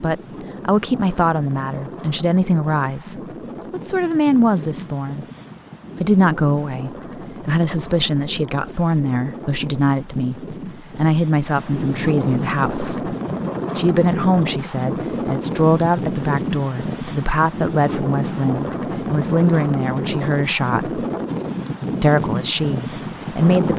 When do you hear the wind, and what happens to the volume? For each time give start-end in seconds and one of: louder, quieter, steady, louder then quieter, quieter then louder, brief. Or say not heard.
0.0-23.7 louder.